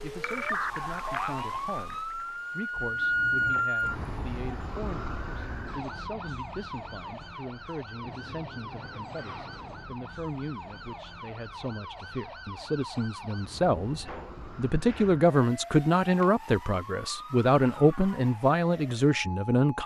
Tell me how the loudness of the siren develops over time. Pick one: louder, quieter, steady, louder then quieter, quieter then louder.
quieter.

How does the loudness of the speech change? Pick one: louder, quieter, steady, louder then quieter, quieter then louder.
louder.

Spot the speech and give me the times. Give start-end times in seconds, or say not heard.
0.0-19.8.